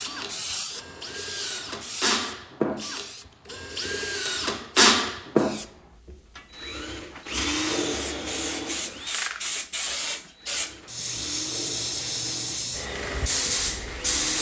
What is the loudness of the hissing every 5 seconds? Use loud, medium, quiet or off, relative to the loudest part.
medium, medium, loud.